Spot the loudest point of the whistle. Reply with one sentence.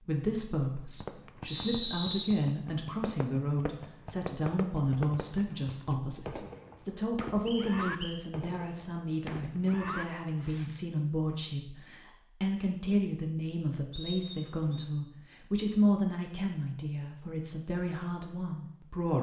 The loudest moment of the whistle is at 2 seconds.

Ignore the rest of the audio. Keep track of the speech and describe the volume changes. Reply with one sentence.
The loudness of the speech stays about the same.